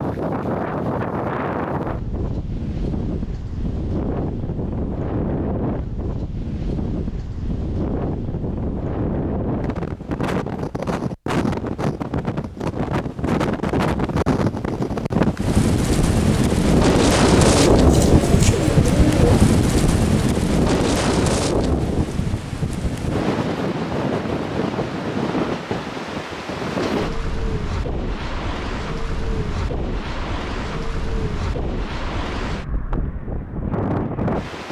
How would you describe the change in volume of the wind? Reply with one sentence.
The loudness of the wind goes up, then down.